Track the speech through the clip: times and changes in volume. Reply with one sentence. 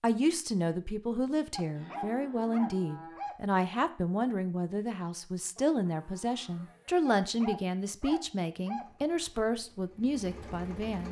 The speech can be heard from 0.0 to 11.0 s, at a steady volume.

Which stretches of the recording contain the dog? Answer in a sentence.
You can hear the dog from 1.6 to 3.4 s and from 7.0 to 8.9 s.